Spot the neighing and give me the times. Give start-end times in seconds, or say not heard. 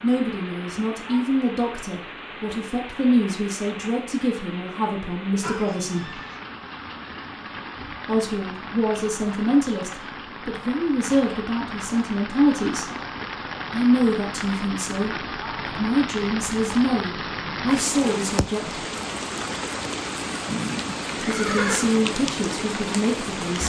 5.4-6.4, 20.4-21.9.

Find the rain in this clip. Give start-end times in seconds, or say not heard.
0.0-23.6.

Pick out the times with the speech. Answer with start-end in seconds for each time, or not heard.
0.0-6.2, 8.1-12.8, 13.7-18.9, 21.1-23.6.